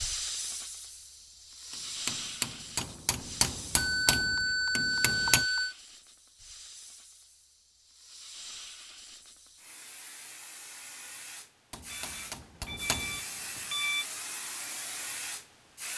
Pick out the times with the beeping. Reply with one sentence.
You can hear the beeping from 3.8 to 5.8 s and from 11.9 to 14.1 s.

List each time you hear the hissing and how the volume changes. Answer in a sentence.
You can hear the hissing from 0.0 to 15.9 s, getting quieter then louder.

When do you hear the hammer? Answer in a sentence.
The hammer can be heard from 1.7 to 5.5 s and from 11.7 to 13.2 s.